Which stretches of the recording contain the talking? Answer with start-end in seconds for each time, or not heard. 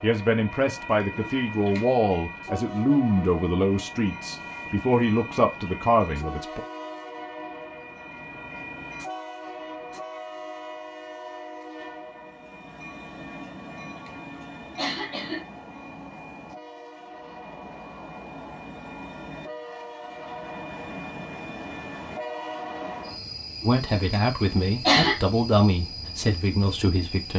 0.0-6.6, 23.6-27.3.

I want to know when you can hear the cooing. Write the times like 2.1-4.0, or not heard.
not heard.